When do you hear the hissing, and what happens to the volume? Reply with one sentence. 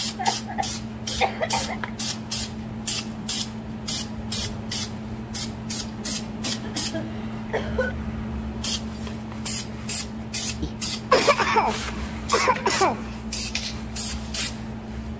You can hear the hissing from 0.0 to 15.1 s, at a steady volume.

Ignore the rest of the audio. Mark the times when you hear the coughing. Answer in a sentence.
The coughing can be heard from 0.1 to 1.8 s, from 6.2 to 8.0 s and from 10.6 to 13.2 s.